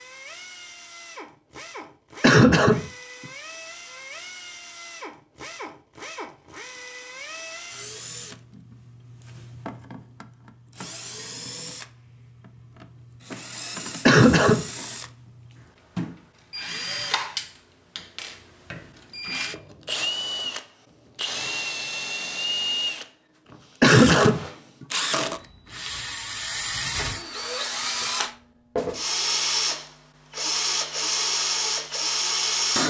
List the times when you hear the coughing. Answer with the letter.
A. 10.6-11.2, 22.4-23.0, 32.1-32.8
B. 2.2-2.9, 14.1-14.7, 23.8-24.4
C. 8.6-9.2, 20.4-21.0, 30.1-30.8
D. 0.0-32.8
B.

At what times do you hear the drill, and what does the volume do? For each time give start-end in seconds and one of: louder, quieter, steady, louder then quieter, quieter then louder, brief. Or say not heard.
0.0-32.8 louder.